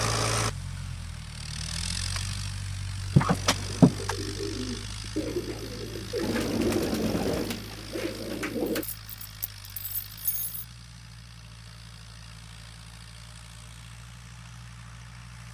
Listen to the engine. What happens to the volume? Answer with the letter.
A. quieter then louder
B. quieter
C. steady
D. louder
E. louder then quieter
B.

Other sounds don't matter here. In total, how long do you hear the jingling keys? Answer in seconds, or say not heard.
3 s.